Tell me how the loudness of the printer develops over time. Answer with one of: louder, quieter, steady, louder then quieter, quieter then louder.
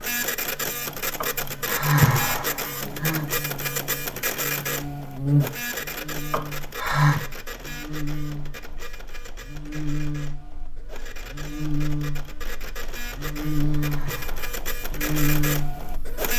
quieter then louder.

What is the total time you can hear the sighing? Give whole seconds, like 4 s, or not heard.
4 s.